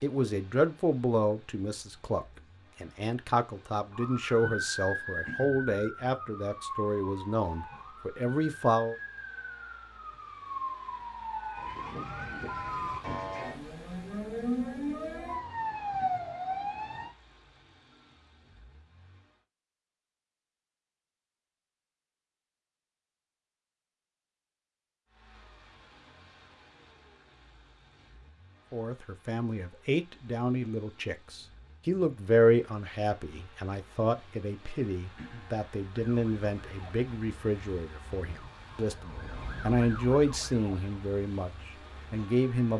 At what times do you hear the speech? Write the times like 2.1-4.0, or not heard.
0.0-8.9, 28.7-42.7.